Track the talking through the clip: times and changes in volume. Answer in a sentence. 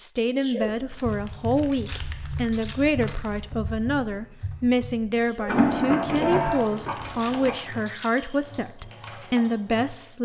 The talking can be heard from 0.0 to 10.2 s, at a steady volume.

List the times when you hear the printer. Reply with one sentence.
You can hear the printer from 5.5 to 7.5 s.